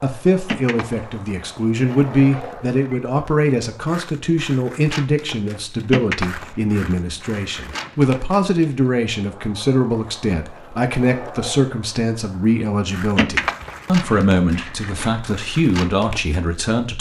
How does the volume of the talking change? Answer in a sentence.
The loudness of the talking stays about the same.